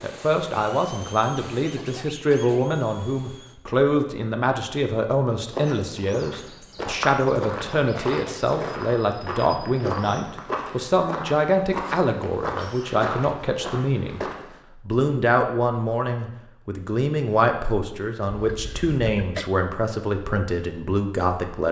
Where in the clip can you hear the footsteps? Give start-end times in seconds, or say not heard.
5.5-14.6.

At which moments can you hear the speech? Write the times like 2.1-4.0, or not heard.
0.0-14.2, 14.8-21.6.